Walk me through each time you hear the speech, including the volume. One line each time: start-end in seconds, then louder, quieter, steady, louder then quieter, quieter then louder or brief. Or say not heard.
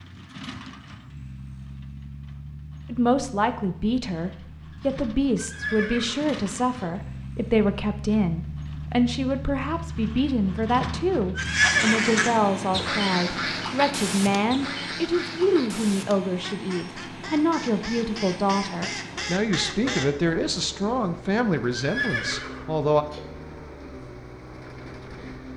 2.9-23.1 steady.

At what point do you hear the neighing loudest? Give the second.
12 s.